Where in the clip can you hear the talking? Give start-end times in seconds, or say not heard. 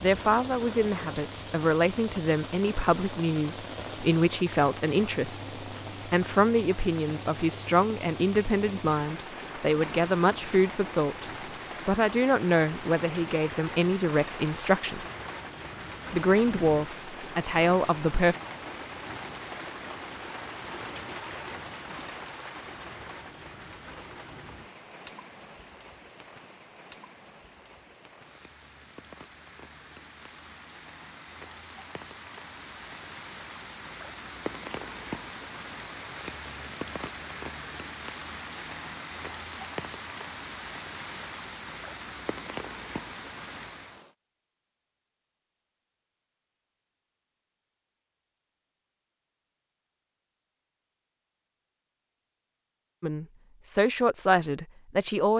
0.0-11.2, 11.8-15.1, 16.1-18.4, 53.0-55.3.